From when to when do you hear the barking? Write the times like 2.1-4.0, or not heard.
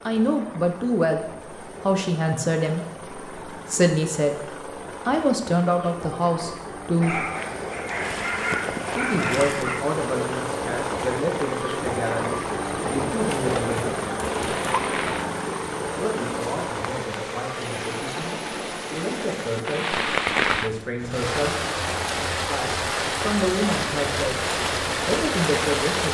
7.0-9.8, 13.2-14.8.